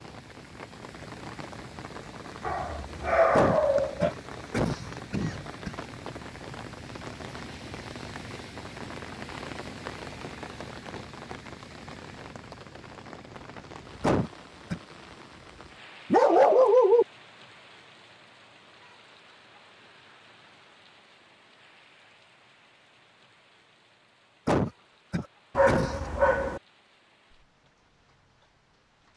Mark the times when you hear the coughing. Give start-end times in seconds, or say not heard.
3.3-5.8, 14.0-14.8, 24.4-26.3.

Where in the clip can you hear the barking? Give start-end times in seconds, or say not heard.
2.4-4.1, 16.1-17.1, 25.6-26.6.